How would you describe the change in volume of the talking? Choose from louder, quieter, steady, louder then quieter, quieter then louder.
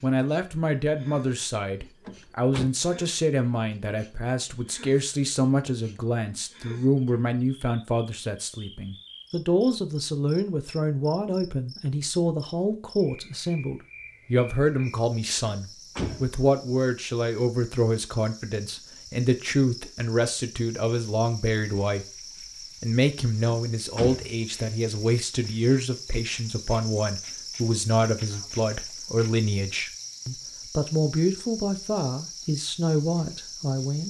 steady.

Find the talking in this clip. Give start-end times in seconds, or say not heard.
0.0-22.1, 22.8-34.0.